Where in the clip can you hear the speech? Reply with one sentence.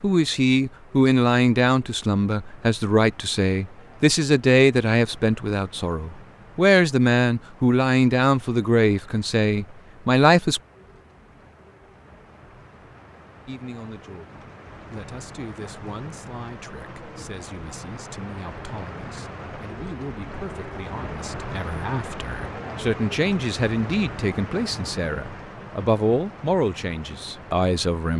The speech can be heard from 0.0 to 10.6 s and from 13.4 to 28.1 s.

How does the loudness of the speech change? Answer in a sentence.
The volume of the speech goes down, then up.